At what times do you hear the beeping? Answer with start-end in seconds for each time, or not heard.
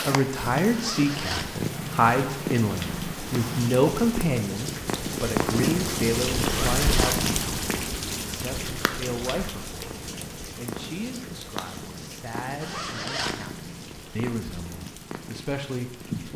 not heard.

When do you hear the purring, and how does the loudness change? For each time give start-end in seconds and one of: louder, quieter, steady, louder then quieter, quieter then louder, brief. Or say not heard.
0.0-16.3 quieter.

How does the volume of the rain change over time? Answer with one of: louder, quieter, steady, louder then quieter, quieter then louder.
louder then quieter.